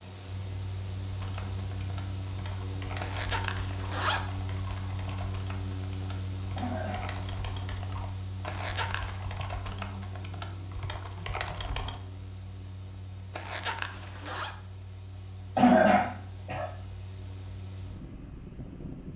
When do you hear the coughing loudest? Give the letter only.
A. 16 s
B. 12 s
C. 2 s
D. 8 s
A.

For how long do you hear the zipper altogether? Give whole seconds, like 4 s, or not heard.
3 s.